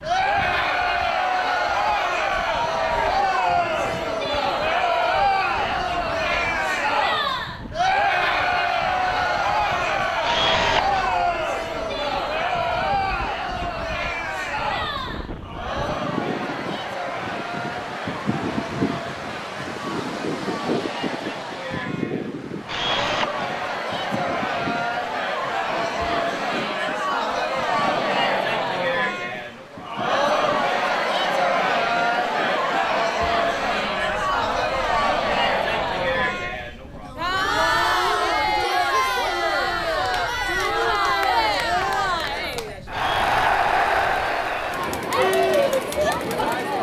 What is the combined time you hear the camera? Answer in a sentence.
You can hear the camera for 2 seconds altogether.